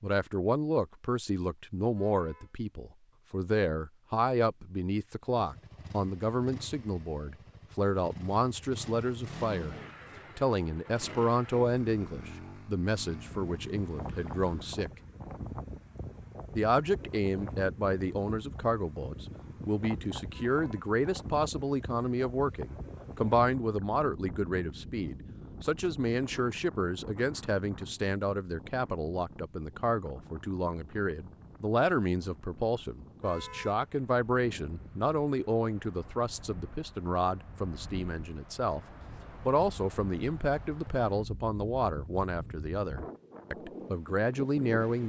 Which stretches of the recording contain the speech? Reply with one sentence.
You can hear the speech from 0.0 to 9.8 s, from 10.3 to 14.9 s, from 16.5 to 38.8 s and from 39.4 to 45.0 s.